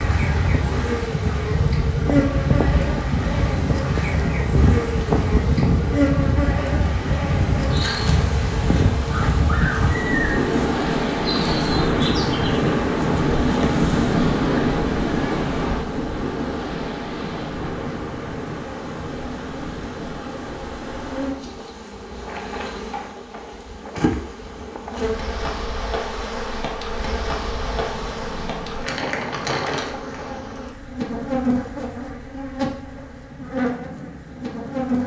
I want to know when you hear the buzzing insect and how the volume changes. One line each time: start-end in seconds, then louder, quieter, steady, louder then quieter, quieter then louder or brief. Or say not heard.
0.0-35.0 quieter then louder.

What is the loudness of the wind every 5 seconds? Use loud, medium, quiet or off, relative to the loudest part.
loud, loud, loud, medium, quiet, quiet, quiet.